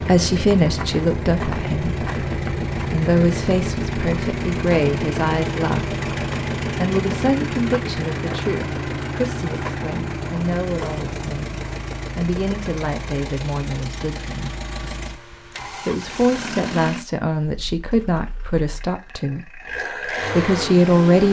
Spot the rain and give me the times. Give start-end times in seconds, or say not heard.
not heard.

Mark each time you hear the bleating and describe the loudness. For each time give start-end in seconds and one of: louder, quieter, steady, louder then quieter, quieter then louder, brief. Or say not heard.
not heard.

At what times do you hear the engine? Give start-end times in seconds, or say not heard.
0.0-21.2.